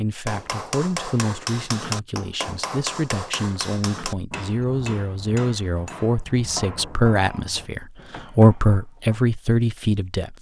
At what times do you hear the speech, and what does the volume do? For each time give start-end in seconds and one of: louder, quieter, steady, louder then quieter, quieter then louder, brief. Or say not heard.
0.0-10.3 louder.